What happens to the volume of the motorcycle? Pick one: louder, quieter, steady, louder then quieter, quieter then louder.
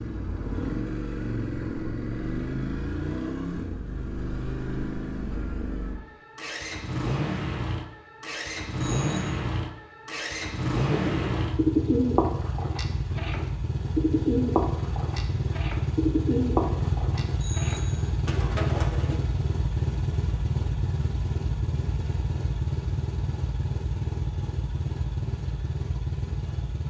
steady.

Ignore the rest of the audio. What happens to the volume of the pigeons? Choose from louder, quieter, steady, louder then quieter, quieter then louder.
quieter.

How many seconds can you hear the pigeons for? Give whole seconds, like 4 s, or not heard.
8 s.